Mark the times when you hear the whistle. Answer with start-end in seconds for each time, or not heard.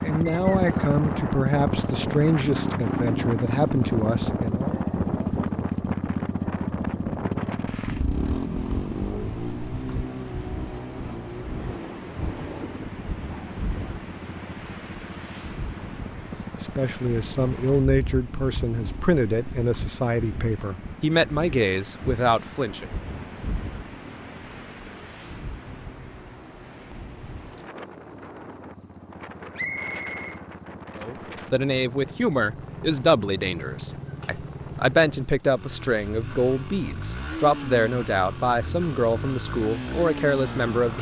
0.2-0.8, 29.6-30.4.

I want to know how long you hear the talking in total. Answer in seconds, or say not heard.
21 s.